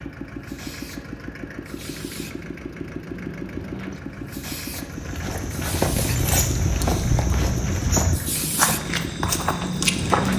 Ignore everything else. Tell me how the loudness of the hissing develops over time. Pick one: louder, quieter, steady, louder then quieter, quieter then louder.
louder.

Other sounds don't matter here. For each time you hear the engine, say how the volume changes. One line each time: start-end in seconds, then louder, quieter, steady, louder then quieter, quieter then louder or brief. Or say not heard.
0.0-10.2 steady.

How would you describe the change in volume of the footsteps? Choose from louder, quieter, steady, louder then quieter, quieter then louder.
steady.